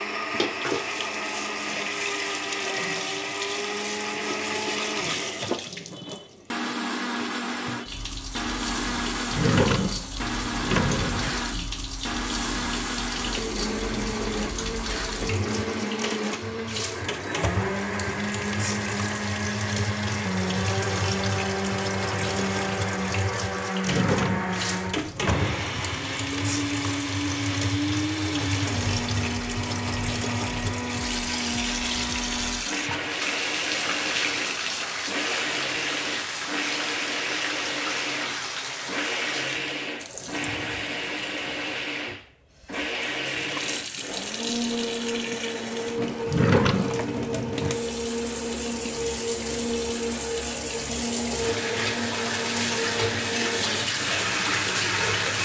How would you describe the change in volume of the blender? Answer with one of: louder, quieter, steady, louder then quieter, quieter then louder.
steady.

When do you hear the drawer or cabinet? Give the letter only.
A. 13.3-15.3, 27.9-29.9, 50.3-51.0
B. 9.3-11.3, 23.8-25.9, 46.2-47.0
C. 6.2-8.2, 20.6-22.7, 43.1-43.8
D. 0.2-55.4
B.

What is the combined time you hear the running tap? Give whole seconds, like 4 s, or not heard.
55 s.